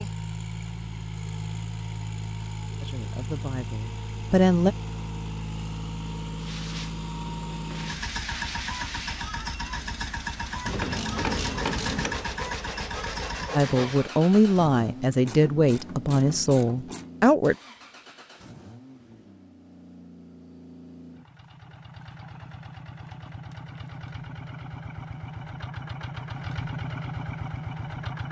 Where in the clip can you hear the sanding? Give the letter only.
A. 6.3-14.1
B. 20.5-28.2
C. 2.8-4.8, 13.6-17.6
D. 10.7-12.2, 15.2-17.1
A.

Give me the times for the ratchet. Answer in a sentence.
The ratchet can be heard from 10.7 to 12.2 s and from 15.2 to 17.1 s.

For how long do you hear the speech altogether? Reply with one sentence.
You can hear the speech for 6 seconds altogether.